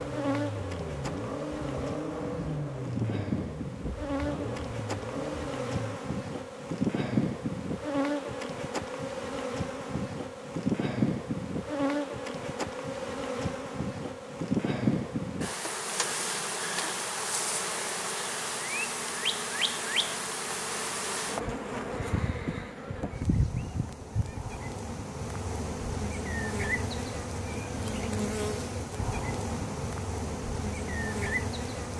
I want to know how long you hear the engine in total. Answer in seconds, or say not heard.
6 s.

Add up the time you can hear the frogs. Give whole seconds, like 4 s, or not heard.
not heard.